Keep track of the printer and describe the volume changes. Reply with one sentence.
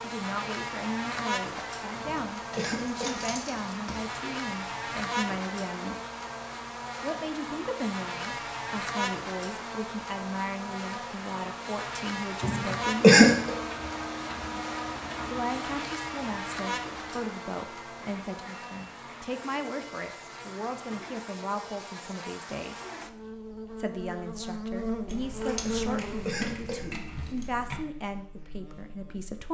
The loudness of the printer goes down.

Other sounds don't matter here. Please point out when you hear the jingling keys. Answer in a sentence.
The jingling keys can be heard from 2.0 to 4.1 s and from 25.1 to 27.9 s.